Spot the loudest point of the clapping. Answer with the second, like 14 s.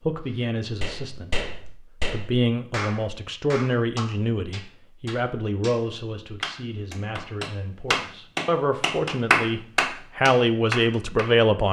9 s.